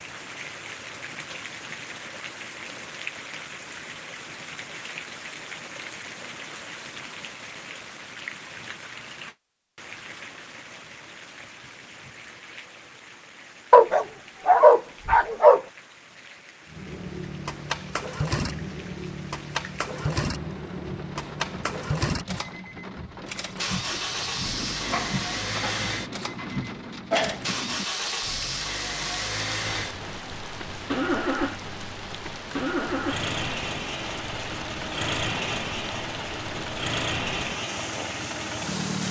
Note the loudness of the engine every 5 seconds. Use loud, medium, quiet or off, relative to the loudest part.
off, off, off, loud, loud, loud, loud, loud.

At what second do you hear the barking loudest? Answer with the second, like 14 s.
15 s.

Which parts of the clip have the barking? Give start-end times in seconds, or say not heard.
13.7-15.6, 24.9-27.4.